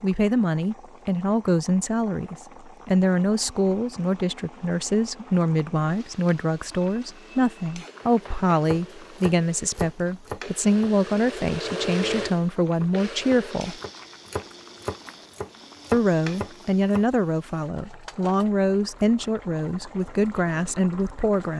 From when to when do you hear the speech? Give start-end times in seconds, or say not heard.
0.0-13.8, 15.9-21.5.